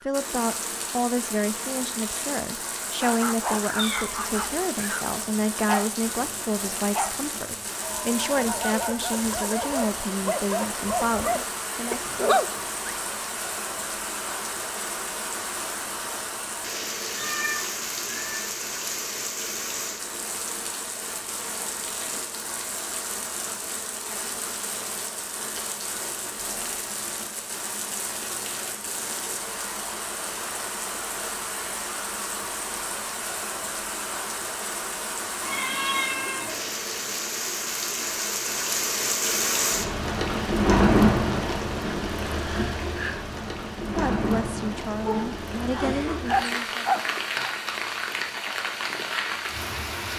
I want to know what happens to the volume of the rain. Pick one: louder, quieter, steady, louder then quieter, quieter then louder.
louder.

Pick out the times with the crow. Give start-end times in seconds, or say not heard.
not heard.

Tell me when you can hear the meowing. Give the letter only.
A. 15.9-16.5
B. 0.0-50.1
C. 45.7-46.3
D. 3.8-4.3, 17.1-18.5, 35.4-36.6
D.